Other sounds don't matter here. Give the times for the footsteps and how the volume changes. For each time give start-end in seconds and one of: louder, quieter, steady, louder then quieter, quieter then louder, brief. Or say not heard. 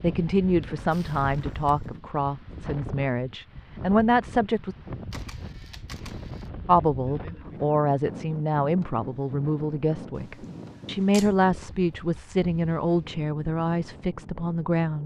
not heard.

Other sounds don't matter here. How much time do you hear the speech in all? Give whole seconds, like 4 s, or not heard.
13 s.